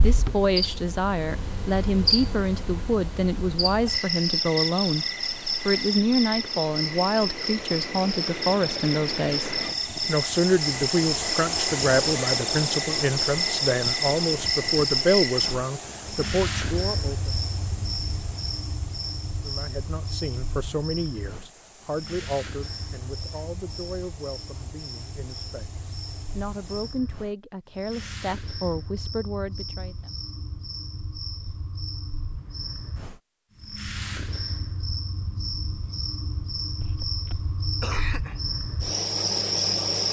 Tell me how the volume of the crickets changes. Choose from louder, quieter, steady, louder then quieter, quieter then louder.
quieter then louder.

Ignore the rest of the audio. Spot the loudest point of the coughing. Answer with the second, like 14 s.
38 s.